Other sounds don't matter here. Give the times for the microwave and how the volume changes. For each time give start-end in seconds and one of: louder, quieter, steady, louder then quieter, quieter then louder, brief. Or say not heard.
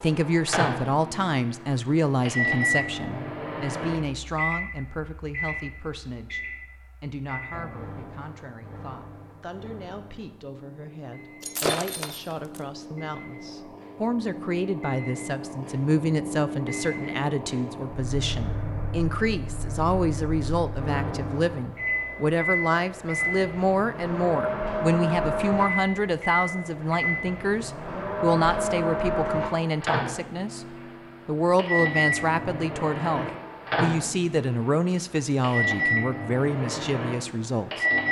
0.0-38.0 quieter then louder.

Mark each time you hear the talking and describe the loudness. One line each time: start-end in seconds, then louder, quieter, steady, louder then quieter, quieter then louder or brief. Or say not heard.
0.0-30.6 quieter then louder
31.2-37.9 steady.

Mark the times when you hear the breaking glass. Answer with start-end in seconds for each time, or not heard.
11.4-12.6.